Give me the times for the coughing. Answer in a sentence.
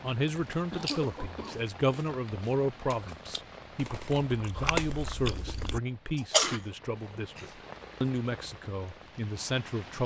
You can hear the coughing from 0.5 to 1.6 s and from 7.0 to 7.7 s.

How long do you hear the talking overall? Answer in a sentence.
The talking can be heard for 10 seconds in total.